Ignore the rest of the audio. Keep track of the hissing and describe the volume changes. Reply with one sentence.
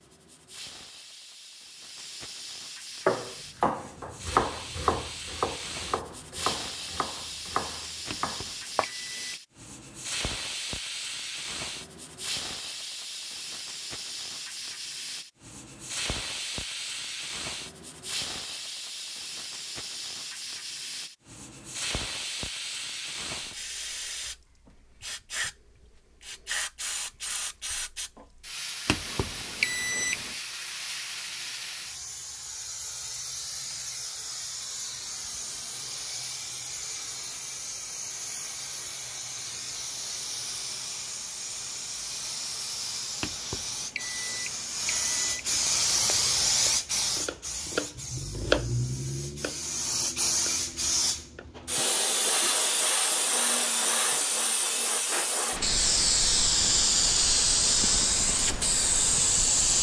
The loudness of the hissing goes up.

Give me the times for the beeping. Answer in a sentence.
The beeping can be heard from 8.1 to 9.3 s, from 28.9 to 30.4 s and from 43.2 to 45.8 s.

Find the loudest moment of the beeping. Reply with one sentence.
The volume of the beeping peaks at 30 seconds.